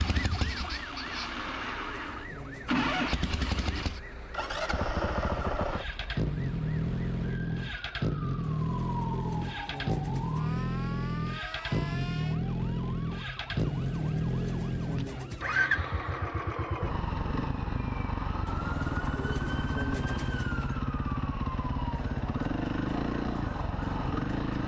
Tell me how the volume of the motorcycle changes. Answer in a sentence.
The loudness of the motorcycle stays about the same.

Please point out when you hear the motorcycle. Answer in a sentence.
You can hear the motorcycle from 0.0 to 24.6 s.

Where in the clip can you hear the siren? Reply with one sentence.
You can hear the siren from 0.1 to 24.6 s.